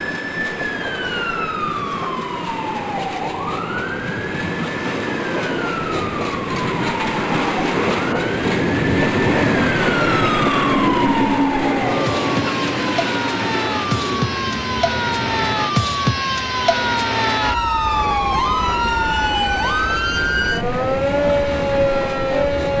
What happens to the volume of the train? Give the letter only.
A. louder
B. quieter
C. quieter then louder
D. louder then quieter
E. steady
D.